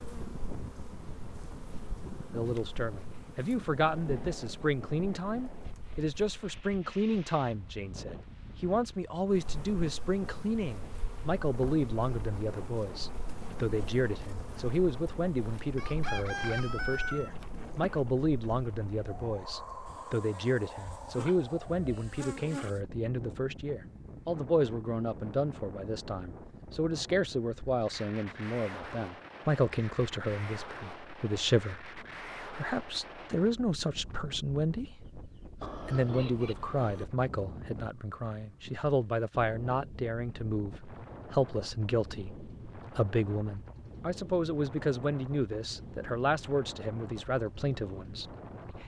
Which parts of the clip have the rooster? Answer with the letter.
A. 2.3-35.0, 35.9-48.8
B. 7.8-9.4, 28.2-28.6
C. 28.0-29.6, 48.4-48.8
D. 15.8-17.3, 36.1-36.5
D.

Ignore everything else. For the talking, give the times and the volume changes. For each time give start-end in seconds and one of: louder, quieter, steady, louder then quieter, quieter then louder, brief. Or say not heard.
2.3-35.0 steady
35.9-48.8 steady.